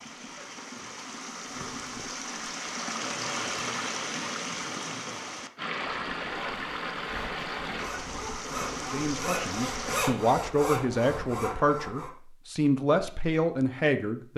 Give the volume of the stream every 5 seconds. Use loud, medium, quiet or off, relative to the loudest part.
loud, loud, off.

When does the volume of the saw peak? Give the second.
10 s.